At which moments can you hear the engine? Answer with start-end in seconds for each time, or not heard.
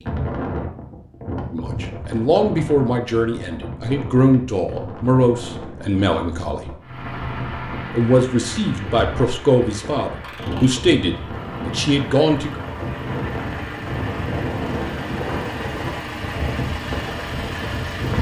6.8-18.1.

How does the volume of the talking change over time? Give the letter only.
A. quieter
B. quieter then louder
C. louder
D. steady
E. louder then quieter
D.